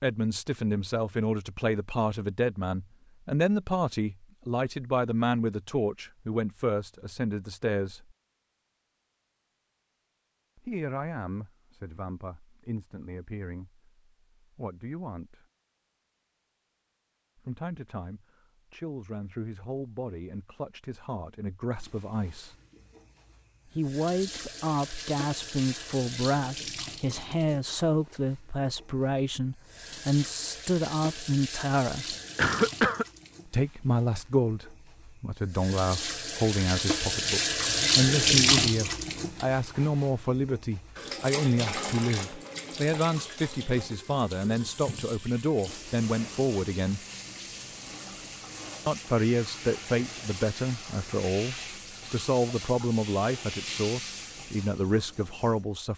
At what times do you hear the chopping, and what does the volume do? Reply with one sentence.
You can't hear the chopping here.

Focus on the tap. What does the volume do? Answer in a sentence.
The volume of the tap goes up, then down.